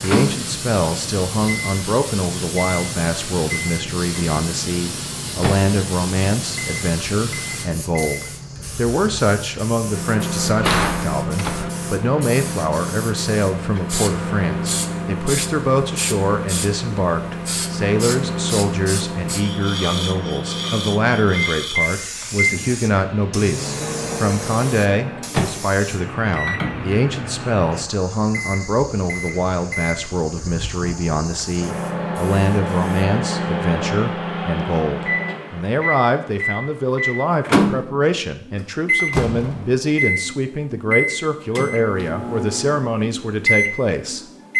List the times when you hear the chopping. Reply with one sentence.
You can't hear the chopping here.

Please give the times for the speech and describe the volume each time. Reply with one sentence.
The speech can be heard from 0.0 to 44.2 s, at a steady volume.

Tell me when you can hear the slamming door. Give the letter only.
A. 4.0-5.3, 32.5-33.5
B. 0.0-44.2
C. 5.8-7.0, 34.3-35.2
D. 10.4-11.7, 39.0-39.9
D.